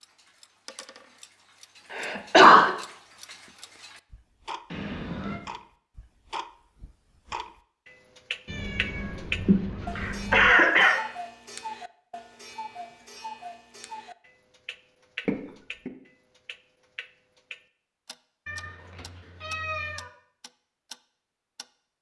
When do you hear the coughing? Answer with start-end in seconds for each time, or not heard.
1.9-2.7, 9.4-11.0, 15.2-15.9.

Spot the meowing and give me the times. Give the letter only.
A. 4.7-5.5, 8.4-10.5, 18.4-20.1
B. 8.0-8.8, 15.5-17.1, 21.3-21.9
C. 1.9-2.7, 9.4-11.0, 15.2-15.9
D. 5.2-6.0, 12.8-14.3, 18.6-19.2
A.